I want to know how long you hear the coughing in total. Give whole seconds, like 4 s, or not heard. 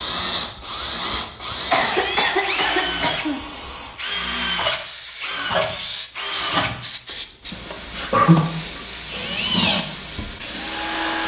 2 s.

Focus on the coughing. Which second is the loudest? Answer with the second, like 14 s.
8 s.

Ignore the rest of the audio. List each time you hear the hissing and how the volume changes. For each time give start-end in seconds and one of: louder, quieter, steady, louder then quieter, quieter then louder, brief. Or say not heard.
0.1-11.2 louder.